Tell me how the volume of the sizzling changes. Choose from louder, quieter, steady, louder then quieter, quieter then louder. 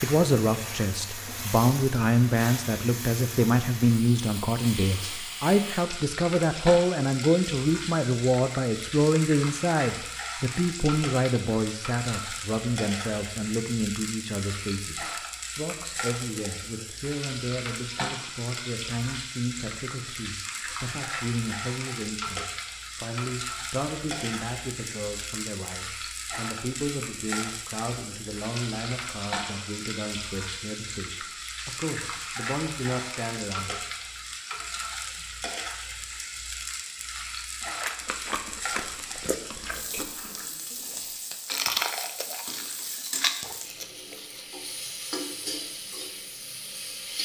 steady.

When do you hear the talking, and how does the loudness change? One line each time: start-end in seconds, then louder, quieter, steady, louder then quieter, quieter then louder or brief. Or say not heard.
0.0-33.9 quieter.